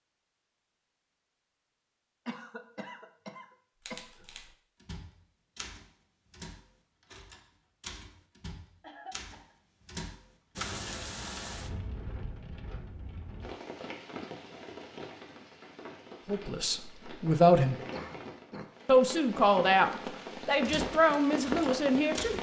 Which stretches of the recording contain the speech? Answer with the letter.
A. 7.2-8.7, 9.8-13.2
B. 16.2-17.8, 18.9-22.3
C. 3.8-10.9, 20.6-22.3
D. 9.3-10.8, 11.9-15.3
B.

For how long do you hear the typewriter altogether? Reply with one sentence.
You can hear the typewriter for 9 seconds altogether.